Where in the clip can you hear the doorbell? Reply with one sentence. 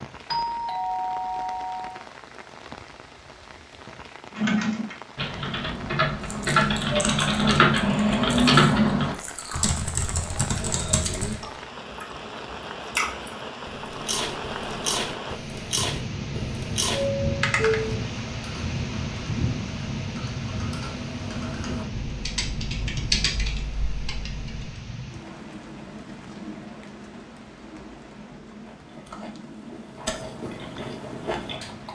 The doorbell can be heard from 0.3 to 2.0 s and from 16.9 to 17.9 s.